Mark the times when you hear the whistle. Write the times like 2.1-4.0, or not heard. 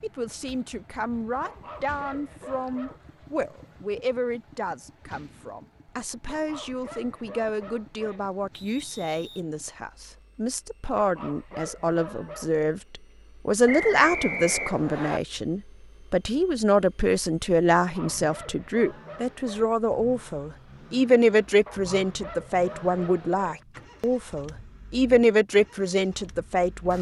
8.5-9.4, 13.7-15.2.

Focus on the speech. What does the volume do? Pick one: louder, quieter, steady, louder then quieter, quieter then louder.
louder.